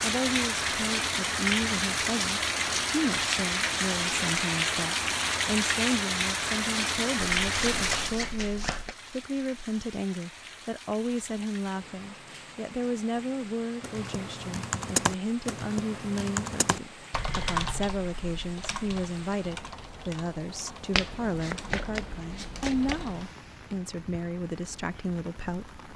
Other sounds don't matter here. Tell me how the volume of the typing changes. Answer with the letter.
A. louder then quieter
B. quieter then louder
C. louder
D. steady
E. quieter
E.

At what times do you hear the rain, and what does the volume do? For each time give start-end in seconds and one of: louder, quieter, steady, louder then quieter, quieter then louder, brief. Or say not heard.
0.0-25.9 quieter.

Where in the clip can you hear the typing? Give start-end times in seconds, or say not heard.
13.8-23.3.